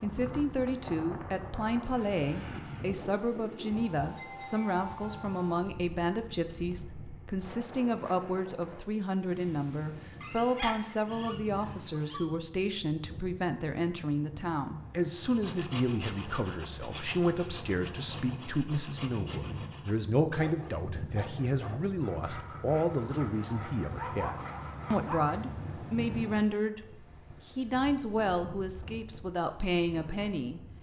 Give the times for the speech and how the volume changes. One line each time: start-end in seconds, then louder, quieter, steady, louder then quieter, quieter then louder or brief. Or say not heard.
0.0-30.6 steady.